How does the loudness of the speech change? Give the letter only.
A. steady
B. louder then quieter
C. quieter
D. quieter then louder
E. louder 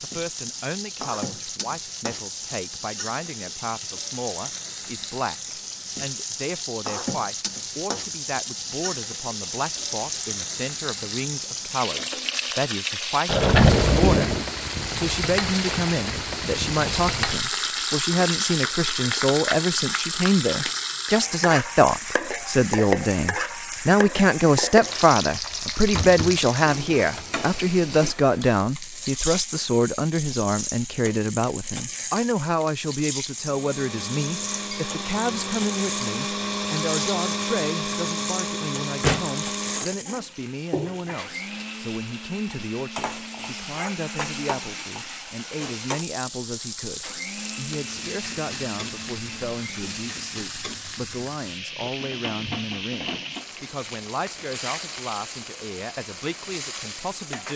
B.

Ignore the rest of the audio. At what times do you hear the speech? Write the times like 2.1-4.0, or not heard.
0.0-14.3, 14.9-57.5.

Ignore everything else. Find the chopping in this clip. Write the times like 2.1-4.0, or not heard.
not heard.